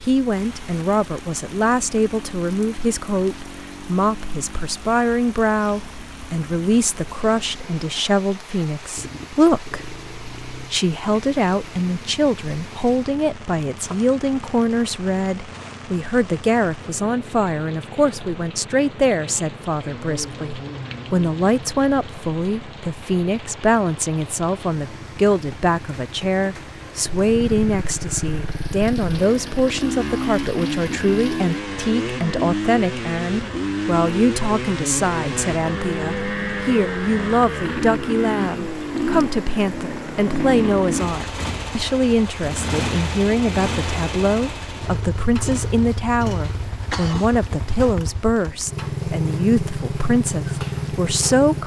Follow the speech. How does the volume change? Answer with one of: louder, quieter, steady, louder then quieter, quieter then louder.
steady.